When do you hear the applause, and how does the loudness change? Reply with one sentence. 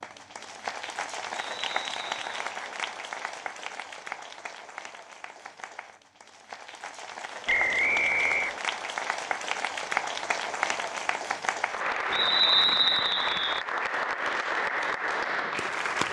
The applause can be heard from 0.0 to 16.0 s, getting quieter then louder.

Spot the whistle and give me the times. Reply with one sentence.
The whistle can be heard from 1.3 to 2.3 s, from 7.5 to 8.6 s and from 12.1 to 13.6 s.